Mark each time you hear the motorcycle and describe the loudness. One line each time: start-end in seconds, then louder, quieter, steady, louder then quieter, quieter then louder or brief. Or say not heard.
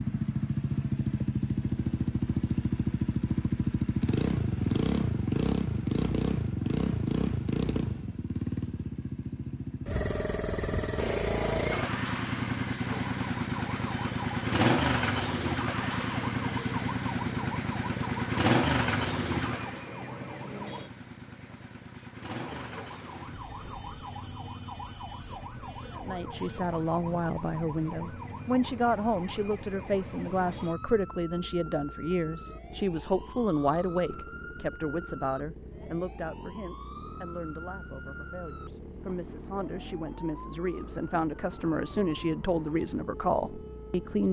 0.0-44.2 quieter.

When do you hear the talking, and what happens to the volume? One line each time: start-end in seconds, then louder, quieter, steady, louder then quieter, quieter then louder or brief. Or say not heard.
25.9-44.2 quieter then louder.